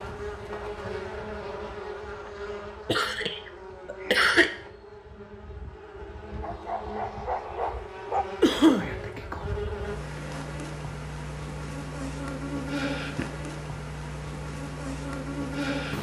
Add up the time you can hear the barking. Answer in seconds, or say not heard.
2 s.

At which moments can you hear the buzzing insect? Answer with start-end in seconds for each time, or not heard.
0.0-15.9.